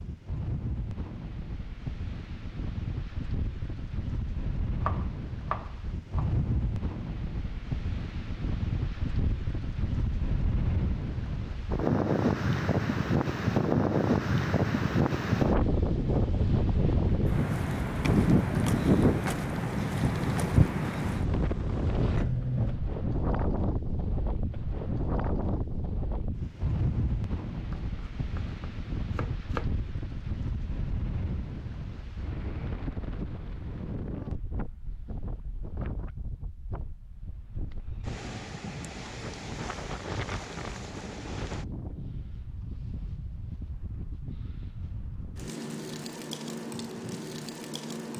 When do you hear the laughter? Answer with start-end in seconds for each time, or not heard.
not heard.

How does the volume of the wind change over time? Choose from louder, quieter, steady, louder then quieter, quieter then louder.
louder then quieter.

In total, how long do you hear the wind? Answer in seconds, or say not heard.
48 s.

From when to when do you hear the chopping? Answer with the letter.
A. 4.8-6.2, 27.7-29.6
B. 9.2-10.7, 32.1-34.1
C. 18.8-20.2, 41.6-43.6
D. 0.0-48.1
A.